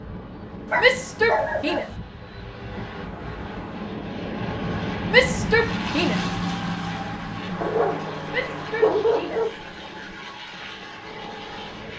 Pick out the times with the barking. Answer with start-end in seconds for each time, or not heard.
0.7-1.9, 7.6-10.2.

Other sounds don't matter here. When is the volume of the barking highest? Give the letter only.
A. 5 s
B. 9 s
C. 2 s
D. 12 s
B.